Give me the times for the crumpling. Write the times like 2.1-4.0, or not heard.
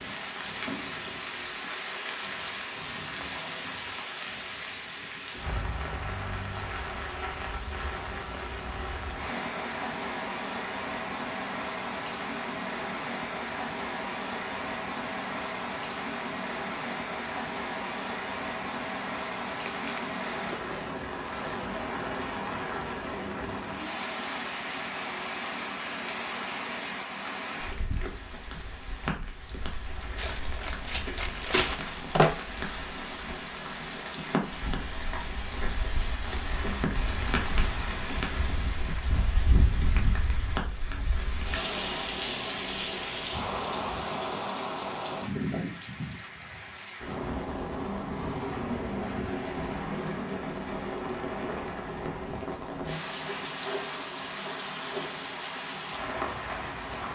19.6-20.6, 30.1-32.4.